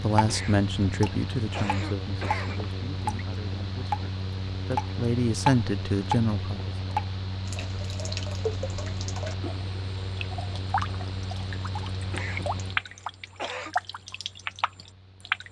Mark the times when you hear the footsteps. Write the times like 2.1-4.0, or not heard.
not heard.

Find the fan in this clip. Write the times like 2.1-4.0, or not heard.
0.0-15.4.